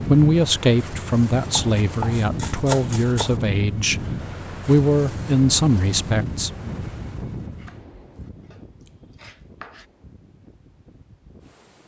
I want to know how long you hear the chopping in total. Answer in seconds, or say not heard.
4 s.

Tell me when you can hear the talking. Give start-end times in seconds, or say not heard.
0.0-4.0, 4.7-6.7.